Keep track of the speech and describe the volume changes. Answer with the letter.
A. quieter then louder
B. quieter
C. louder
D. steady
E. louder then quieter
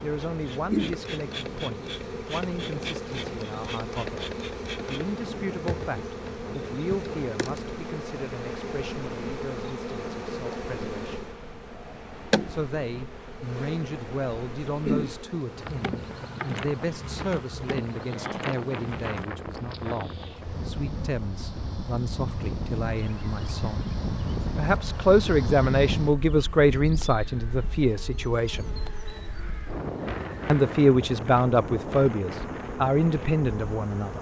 C.